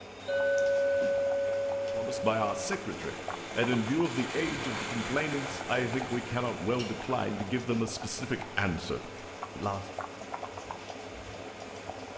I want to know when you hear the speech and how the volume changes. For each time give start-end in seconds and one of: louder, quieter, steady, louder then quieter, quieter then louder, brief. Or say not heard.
1.9-9.9 steady.